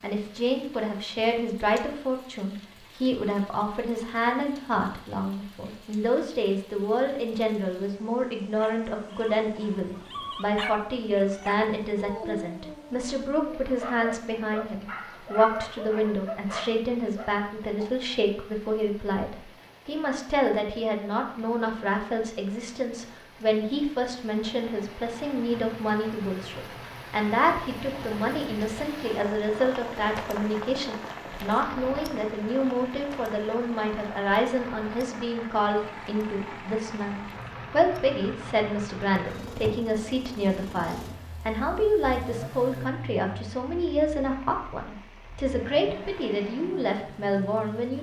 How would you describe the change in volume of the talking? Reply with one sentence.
The volume of the talking stays about the same.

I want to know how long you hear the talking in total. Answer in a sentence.
The talking can be heard for 48 seconds in total.